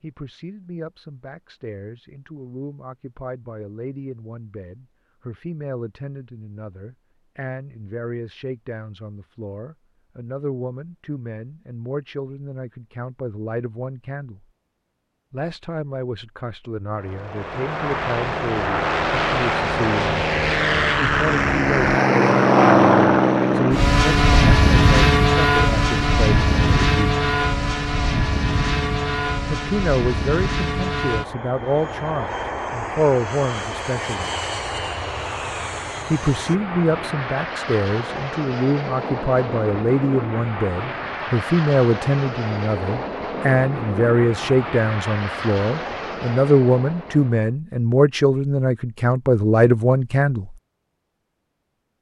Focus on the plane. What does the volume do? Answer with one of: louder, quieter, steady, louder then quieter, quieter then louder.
quieter.